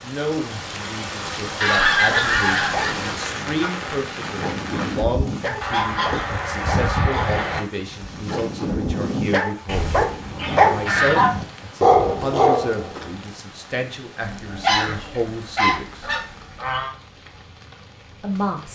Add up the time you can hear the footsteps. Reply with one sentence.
You can't hear the footsteps here.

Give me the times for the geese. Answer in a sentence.
You can hear the geese from 1.6 to 3.1 s, from 5.6 to 7.6 s, from 9.7 to 11.3 s and from 14.2 to 16.9 s.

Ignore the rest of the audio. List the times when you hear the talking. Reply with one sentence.
The talking can be heard from 0.0 to 16.1 s and from 18.2 to 18.7 s.